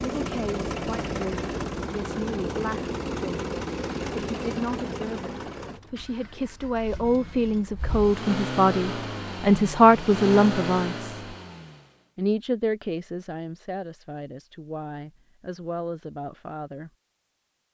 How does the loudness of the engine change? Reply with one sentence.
The volume of the engine goes down, then up.